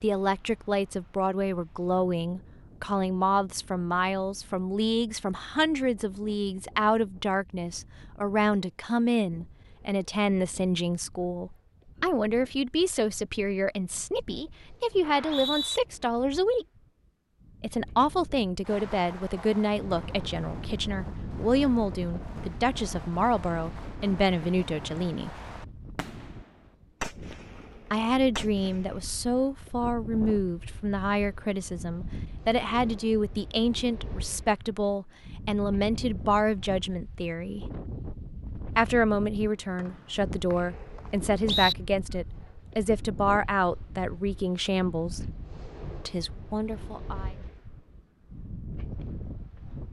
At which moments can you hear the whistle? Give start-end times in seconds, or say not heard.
15.0-15.8, 39.8-41.8.